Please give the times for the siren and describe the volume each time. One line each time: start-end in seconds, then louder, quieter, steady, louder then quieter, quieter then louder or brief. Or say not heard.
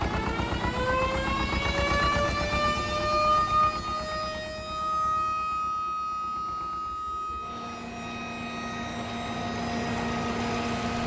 0.0-10.8 quieter.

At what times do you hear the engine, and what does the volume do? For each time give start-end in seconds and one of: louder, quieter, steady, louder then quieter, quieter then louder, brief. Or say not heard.
0.0-11.0 quieter then louder.